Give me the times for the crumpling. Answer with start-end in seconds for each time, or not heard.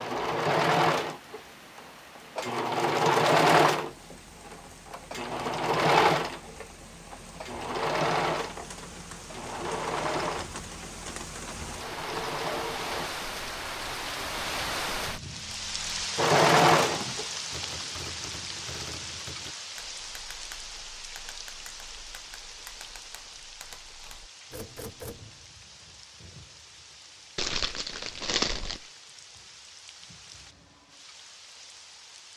27.4-28.9.